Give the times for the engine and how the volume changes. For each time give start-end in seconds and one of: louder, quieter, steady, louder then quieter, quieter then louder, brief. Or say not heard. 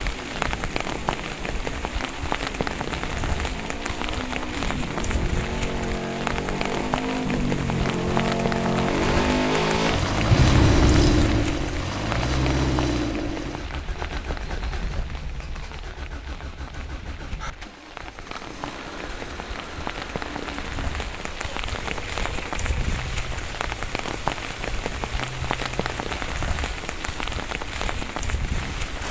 0.0-29.0 louder then quieter.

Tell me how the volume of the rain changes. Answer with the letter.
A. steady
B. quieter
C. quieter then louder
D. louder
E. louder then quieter
C.